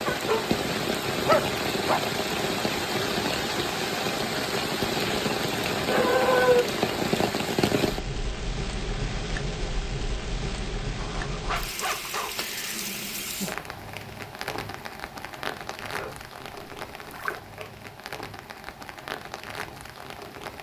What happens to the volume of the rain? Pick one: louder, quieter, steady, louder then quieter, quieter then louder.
quieter.